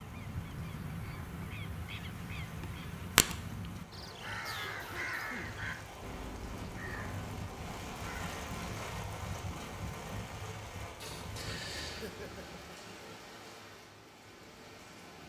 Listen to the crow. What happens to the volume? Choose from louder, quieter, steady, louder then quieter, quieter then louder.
louder then quieter.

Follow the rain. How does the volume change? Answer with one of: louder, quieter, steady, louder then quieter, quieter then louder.
louder then quieter.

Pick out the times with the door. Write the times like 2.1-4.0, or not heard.
11.0-12.1.